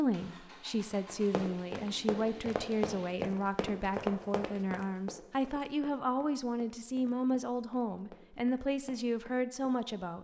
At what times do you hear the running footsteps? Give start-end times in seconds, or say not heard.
1.1-9.8.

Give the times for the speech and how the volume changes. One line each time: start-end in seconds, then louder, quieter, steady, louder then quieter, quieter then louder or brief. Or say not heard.
0.0-10.1 steady.